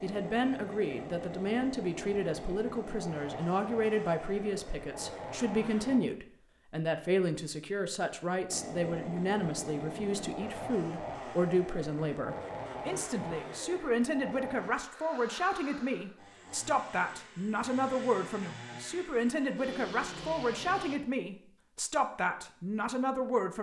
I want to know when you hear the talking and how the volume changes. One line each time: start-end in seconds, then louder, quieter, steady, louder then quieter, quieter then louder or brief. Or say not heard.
0.0-23.5 steady.